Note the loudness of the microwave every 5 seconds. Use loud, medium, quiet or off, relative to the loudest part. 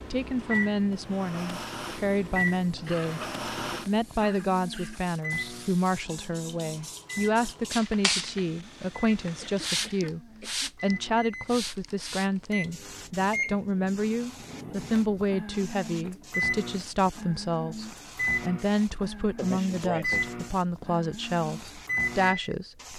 loud, medium, medium, loud, loud.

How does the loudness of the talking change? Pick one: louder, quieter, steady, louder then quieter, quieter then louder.
steady.